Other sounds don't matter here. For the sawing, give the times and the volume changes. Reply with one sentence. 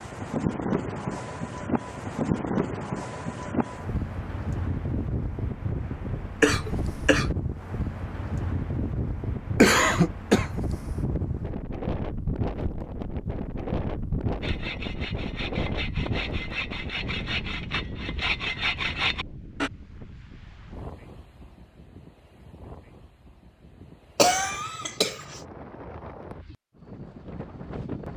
You can hear the sawing from 14.4 to 19.7 s, getting louder.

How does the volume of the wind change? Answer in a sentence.
The volume of the wind goes down.